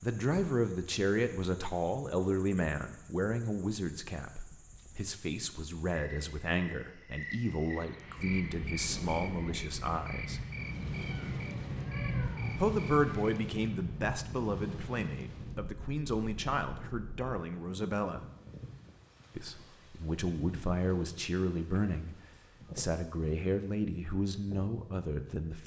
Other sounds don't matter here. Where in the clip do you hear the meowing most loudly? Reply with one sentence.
The loudest moment of the meowing is at 12 seconds.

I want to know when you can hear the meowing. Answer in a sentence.
The meowing can be heard from 10.6 to 12.6 s.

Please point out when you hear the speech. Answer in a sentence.
The speech can be heard from 0.0 to 10.4 s, from 12.6 to 18.2 s, from 19.4 to 22.1 s and from 22.8 to 25.6 s.